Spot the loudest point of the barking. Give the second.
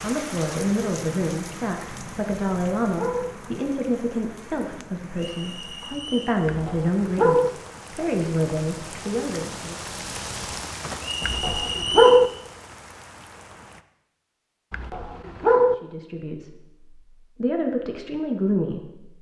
12 s.